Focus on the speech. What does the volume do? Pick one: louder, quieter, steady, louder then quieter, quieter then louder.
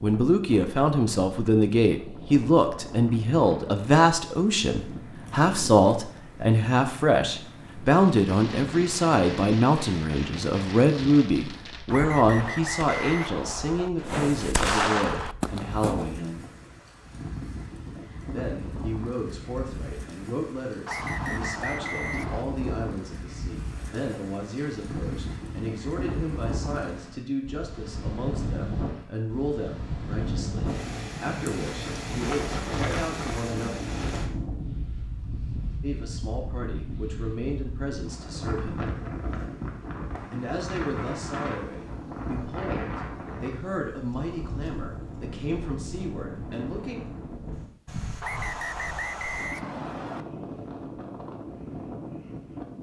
quieter.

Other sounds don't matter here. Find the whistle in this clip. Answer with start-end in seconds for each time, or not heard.
11.9-13.9, 20.9-22.4, 48.2-50.2.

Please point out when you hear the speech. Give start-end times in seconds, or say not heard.
0.0-16.4, 18.3-33.8, 35.8-38.9, 40.3-47.0.